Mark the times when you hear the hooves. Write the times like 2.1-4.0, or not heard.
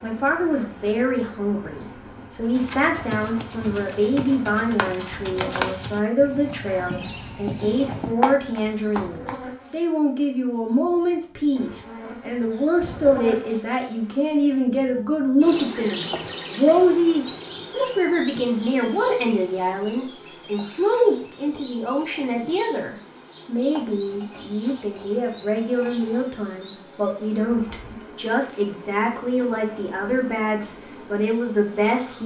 2.5-9.3.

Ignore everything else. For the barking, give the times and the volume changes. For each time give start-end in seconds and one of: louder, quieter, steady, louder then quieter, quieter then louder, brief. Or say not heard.
not heard.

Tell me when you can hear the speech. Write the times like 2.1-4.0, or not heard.
0.0-32.2.